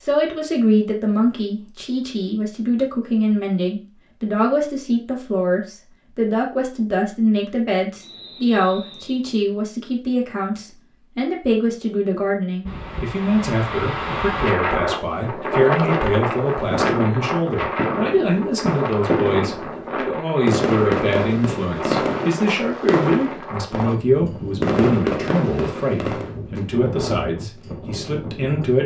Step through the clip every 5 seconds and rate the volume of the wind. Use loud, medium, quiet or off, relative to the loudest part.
off, off, loud, loud, medium, medium.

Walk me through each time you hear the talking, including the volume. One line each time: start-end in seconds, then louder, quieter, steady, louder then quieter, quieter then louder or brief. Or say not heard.
0.0-28.8 steady.